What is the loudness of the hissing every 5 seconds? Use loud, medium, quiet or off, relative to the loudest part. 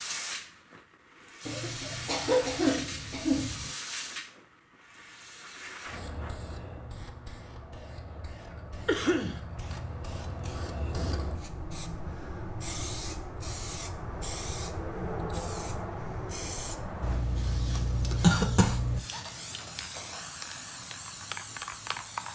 loud, medium, loud, loud, loud.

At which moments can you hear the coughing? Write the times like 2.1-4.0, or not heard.
1.4-3.7, 8.8-9.4, 17.0-19.0.